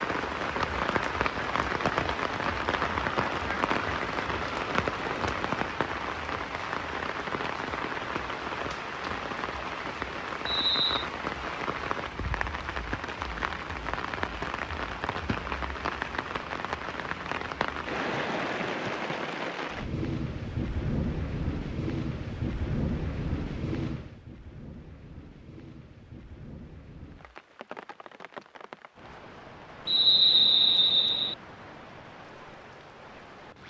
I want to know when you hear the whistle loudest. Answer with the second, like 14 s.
30 s.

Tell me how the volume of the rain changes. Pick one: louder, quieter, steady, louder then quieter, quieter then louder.
quieter.